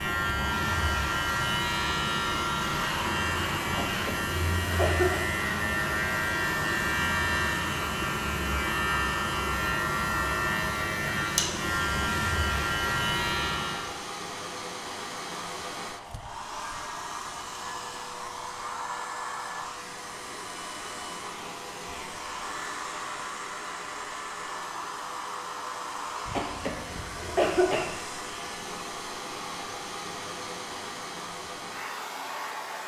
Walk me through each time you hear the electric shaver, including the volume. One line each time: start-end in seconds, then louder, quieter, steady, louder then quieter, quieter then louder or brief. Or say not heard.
0.0-13.9 steady.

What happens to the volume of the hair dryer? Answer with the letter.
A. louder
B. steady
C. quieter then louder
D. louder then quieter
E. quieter
B.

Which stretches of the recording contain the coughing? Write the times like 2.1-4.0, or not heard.
3.6-5.2, 26.2-27.9.